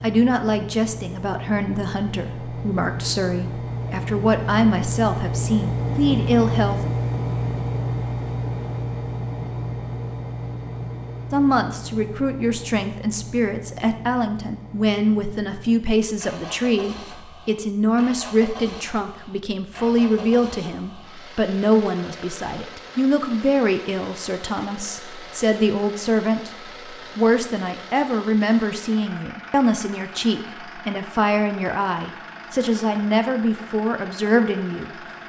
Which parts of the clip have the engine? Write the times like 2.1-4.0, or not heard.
0.0-35.2.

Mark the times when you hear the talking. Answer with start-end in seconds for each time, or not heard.
0.0-6.8, 11.3-34.9.